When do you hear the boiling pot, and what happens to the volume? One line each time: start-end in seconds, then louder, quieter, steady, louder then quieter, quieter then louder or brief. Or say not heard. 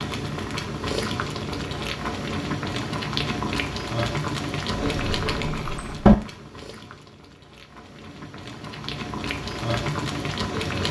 0.0-10.8 quieter then louder.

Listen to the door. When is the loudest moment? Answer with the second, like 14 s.
6 s.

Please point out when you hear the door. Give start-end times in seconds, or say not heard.
4.8-6.2.